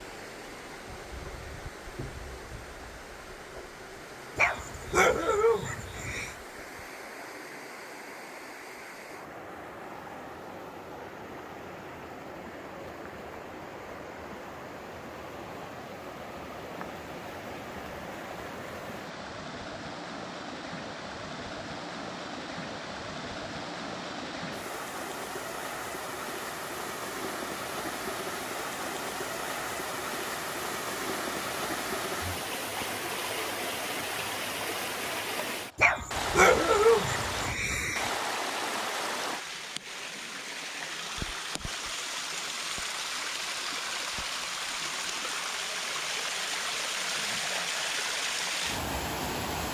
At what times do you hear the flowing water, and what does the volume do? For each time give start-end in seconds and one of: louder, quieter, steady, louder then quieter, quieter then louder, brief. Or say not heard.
0.0-49.6 louder.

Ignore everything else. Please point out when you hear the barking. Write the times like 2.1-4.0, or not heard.
4.3-6.3, 35.8-38.1.